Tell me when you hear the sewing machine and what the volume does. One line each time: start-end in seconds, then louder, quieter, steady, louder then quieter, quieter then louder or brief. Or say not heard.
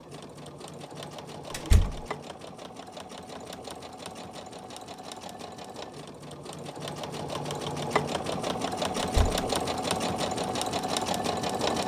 0.0-11.8 louder.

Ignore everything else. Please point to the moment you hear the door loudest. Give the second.
2 s.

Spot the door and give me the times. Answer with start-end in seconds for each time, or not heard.
1.5-2.0, 8.9-9.4.